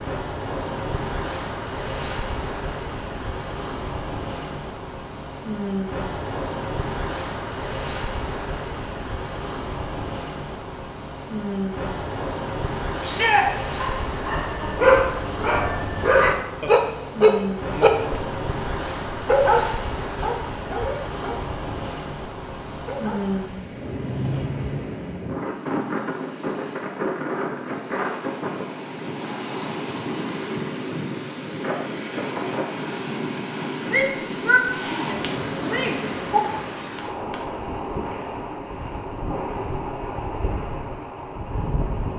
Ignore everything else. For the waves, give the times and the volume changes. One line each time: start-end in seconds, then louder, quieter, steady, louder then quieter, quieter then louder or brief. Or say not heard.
0.0-42.1 steady.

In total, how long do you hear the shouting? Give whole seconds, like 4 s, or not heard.
3 s.